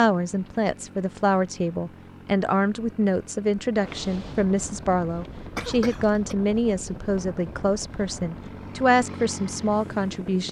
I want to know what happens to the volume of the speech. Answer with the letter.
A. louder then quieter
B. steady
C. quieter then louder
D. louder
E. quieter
B.